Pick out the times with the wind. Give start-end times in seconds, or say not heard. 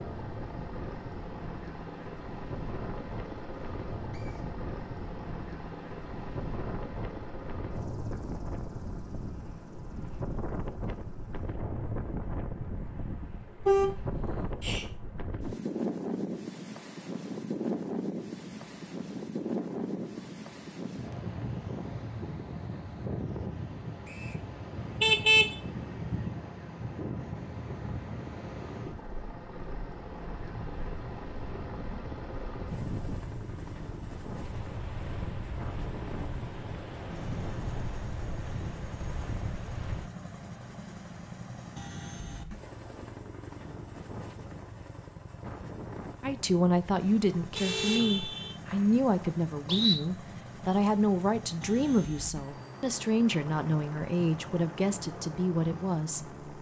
0.0-40.1.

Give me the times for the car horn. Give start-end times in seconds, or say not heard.
13.7-14.8, 24.8-26.3, 47.5-48.5.